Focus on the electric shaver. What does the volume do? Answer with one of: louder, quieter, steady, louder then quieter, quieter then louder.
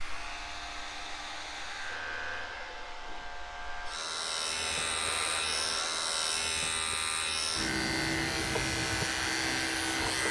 louder.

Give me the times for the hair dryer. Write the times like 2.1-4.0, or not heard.
0.0-10.2.